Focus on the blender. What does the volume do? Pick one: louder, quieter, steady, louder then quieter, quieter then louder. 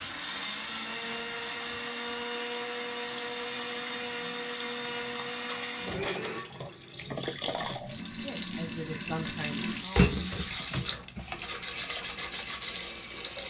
steady.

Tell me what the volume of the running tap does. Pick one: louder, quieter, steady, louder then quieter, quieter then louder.
louder then quieter.